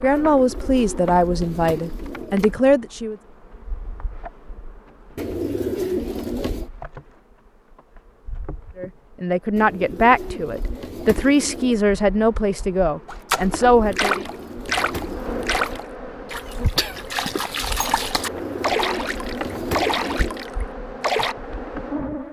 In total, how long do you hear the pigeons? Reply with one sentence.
You can hear the pigeons for 11 seconds altogether.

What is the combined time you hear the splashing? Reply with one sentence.
The splashing can be heard for 8 seconds in total.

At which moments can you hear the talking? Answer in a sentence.
The talking can be heard from 0.0 to 3.1 s and from 8.8 to 14.2 s.